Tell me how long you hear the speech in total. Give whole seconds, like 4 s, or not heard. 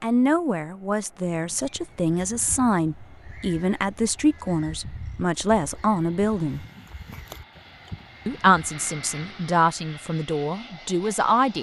10 s.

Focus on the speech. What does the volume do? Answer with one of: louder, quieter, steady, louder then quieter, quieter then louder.
steady.